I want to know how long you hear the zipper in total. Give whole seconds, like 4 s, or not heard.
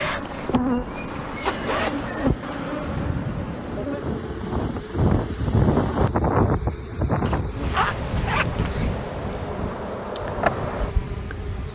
2 s.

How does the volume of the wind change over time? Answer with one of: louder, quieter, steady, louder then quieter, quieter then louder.
louder then quieter.